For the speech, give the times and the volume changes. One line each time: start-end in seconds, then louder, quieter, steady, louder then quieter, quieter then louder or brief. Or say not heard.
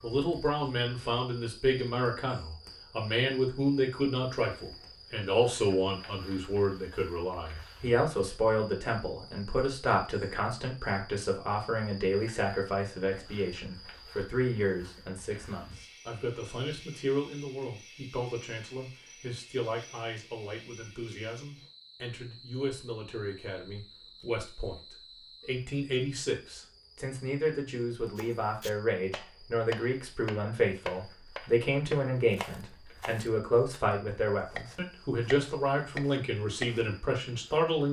0.0-37.8 quieter then louder.